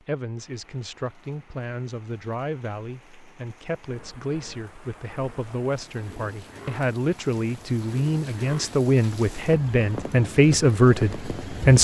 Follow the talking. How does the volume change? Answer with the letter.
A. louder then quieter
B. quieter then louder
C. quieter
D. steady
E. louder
E.